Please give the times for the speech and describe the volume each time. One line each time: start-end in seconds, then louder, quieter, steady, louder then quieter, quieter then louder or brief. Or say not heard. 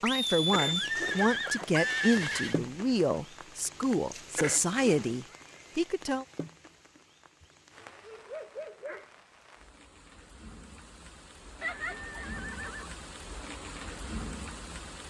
0.0-6.2 steady.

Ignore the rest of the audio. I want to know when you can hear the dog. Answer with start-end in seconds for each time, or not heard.
7.4-9.1.